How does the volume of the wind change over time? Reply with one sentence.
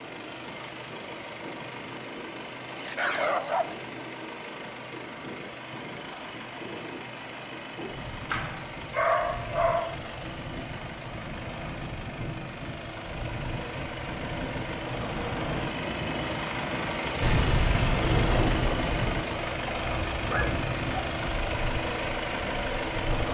The loudness of the wind goes up.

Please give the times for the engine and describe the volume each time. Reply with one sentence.
You can hear the engine from 0.0 to 23.2 s, getting louder.